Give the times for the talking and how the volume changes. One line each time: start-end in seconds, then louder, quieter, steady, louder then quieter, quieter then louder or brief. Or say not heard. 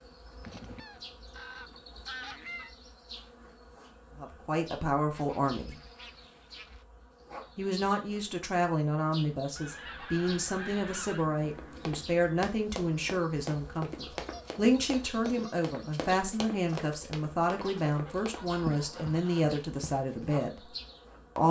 4.2-5.8 brief
7.5-20.7 steady.